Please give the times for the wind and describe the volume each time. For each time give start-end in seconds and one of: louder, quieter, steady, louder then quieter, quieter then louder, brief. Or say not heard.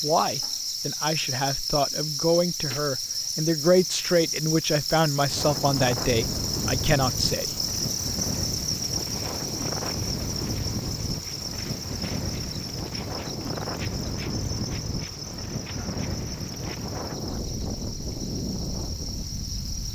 5.2-19.9 steady.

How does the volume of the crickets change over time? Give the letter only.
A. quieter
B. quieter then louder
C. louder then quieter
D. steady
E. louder
A.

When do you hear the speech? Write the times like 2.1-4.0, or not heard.
0.0-7.6.